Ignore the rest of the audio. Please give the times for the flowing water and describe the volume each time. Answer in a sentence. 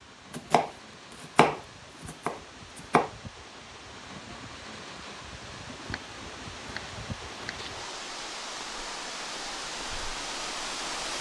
The flowing water can be heard from 0.0 to 11.1 s, getting louder.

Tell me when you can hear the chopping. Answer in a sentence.
You can hear the chopping from 0.3 to 3.1 s and from 5.7 to 7.7 s.